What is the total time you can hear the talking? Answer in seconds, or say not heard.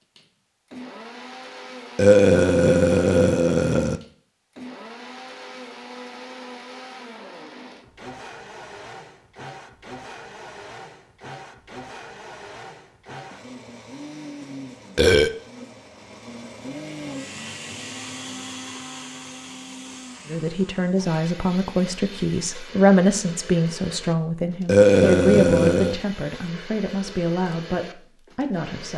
9 s.